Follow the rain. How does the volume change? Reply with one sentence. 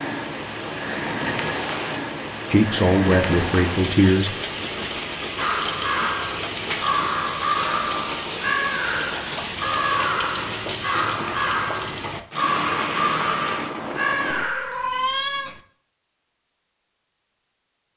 The loudness of the rain stays about the same.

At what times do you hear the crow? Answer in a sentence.
The crow can be heard from 5.3 to 14.9 s.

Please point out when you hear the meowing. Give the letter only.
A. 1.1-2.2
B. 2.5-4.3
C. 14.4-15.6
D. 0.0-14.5
C.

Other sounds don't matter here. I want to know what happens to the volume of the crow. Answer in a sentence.
The loudness of the crow stays about the same.